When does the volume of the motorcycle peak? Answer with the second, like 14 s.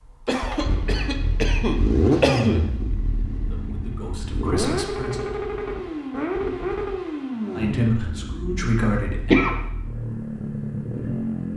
2 s.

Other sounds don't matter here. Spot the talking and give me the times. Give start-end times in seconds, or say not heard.
3.4-5.5, 7.5-9.3.